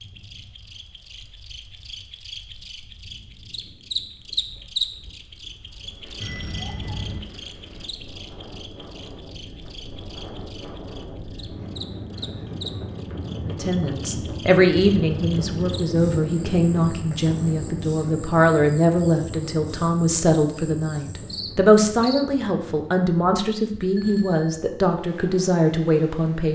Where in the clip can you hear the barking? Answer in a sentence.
You can't hear the barking here.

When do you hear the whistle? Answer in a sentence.
The whistle can't be heard in this clip.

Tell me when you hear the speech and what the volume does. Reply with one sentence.
You can hear the speech from 13.4 to 26.5 s, at a steady volume.